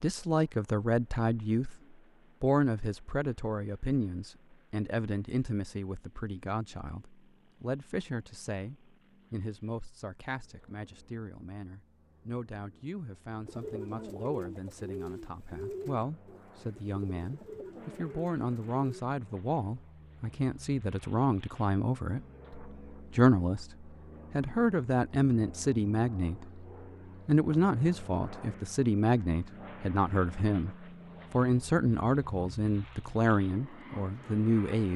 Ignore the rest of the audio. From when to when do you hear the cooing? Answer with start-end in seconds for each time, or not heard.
13.4-19.1.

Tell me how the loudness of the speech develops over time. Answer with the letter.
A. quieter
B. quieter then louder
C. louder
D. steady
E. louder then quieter
B.